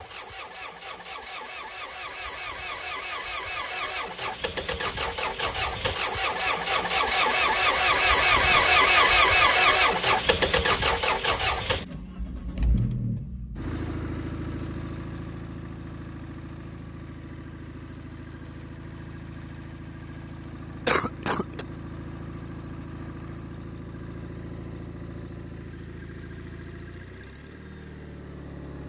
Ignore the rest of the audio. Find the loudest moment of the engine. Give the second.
9 s.